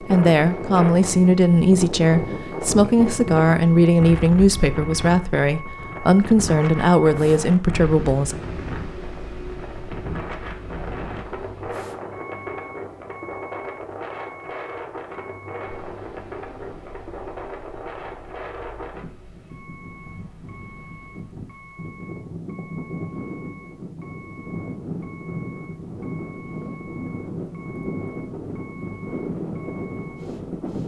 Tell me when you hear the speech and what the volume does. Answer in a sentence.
The speech can be heard from 0.0 to 8.3 s, at a steady volume.